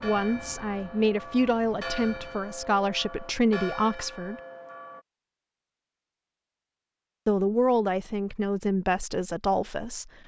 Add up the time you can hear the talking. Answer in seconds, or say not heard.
7 s.